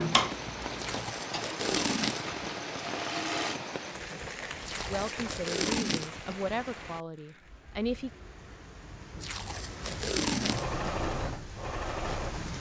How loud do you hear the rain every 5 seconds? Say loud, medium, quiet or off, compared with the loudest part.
loud, medium, loud.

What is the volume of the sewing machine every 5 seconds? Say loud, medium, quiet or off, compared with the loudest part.
loud, off, loud.